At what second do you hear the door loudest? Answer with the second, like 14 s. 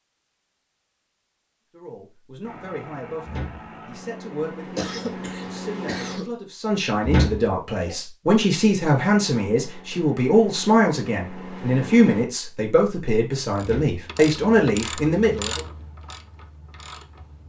7 s.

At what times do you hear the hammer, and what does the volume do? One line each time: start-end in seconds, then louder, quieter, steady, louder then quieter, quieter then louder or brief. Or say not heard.
not heard.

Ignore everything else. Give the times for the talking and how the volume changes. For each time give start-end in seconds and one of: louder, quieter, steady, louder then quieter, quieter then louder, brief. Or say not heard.
1.7-15.6 louder.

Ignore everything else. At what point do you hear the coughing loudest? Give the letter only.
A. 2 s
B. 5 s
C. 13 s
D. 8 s
B.